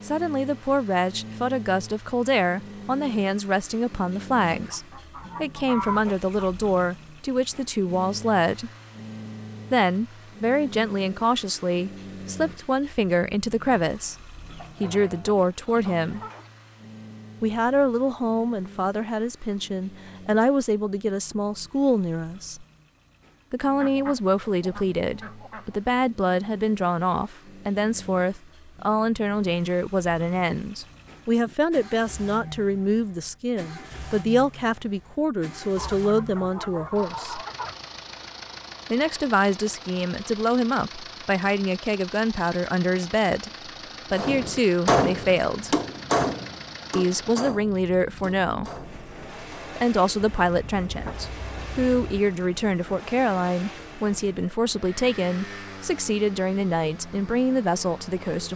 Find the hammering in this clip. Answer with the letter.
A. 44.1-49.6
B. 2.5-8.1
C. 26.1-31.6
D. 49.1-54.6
A.